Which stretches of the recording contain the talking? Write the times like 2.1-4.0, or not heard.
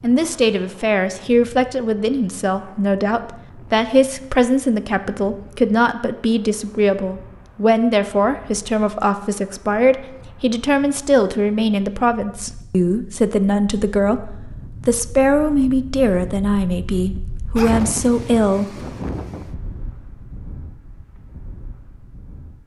0.0-18.8.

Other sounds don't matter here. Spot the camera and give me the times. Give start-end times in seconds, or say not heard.
not heard.